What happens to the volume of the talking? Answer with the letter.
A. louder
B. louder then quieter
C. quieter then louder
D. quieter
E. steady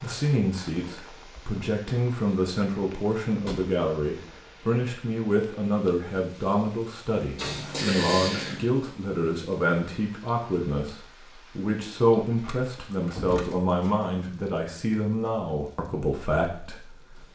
E.